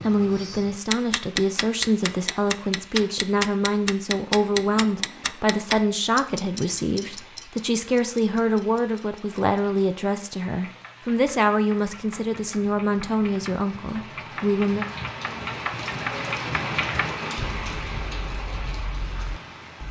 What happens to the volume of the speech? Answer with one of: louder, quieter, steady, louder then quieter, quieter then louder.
steady.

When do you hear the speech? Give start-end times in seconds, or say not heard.
0.0-14.8.